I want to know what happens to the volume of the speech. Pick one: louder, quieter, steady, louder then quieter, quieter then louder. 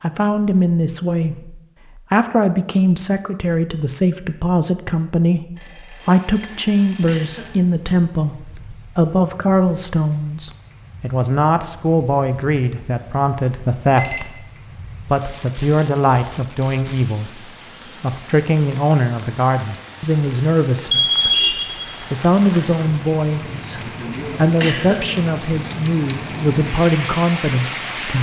steady.